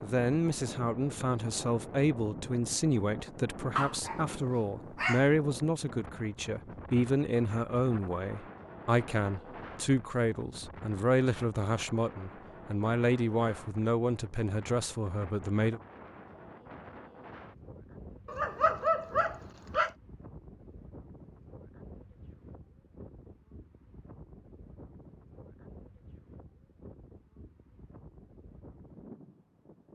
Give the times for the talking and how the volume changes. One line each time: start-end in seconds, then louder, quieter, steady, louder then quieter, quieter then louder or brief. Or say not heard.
0.0-15.8 steady.